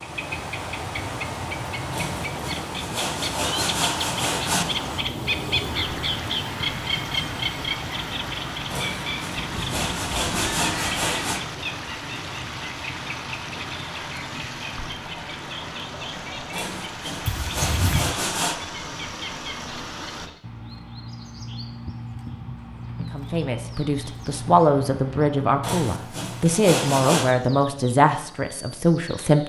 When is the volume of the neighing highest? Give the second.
18 s.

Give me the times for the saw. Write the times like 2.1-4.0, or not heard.
1.9-4.8, 8.7-11.4, 16.5-18.6, 25.6-27.4.